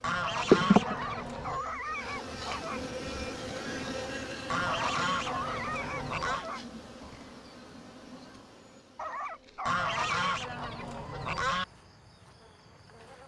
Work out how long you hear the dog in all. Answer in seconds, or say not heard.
6 s.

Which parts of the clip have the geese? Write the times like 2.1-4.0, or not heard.
0.0-1.6, 4.5-6.5, 9.7-11.7.